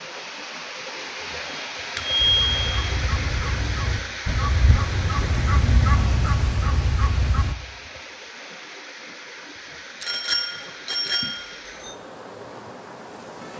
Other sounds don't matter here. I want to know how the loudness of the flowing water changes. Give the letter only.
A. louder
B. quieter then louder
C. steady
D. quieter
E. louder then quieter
D.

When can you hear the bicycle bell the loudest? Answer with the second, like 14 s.
2 s.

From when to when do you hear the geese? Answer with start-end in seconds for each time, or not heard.
2.1-7.5.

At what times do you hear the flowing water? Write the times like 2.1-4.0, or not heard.
0.0-13.5.